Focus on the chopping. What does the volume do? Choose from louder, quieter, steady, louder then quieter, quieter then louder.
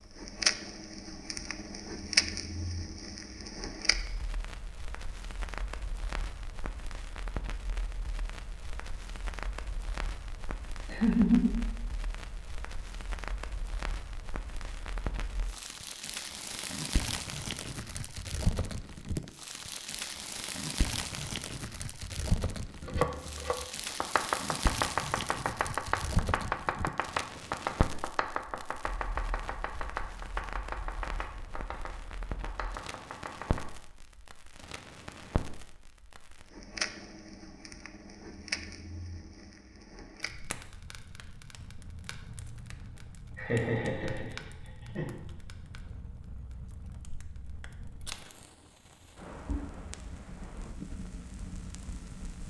quieter.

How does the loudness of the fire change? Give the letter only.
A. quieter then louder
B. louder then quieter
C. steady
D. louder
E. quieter
E.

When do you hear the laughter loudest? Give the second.
11 s.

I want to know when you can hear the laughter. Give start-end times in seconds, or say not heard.
10.8-11.6, 43.4-45.1.